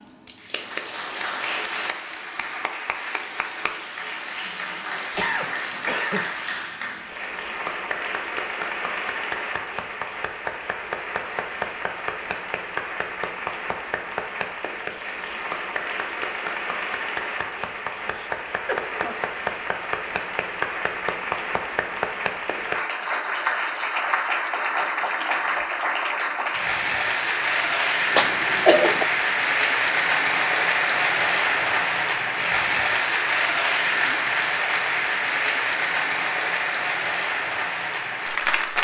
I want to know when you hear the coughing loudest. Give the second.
29 s.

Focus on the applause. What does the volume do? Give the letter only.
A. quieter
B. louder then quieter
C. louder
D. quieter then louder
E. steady
C.